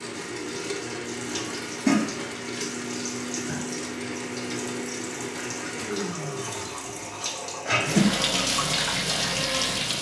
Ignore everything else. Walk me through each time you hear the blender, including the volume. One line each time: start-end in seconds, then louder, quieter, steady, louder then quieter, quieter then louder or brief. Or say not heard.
0.0-9.9 steady.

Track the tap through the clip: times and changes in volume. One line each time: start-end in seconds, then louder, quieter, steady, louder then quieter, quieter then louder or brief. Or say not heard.
0.0-9.9 quieter then louder.